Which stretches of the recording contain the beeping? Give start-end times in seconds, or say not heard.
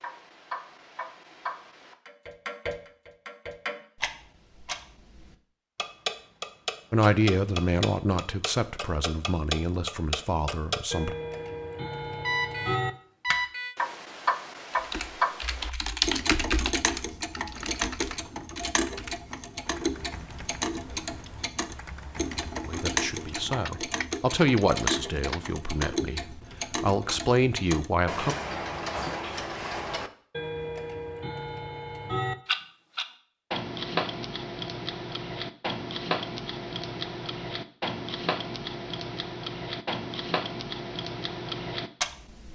12.2-13.8.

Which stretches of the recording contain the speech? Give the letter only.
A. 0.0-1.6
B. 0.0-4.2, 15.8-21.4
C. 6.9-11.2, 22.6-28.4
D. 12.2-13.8
C.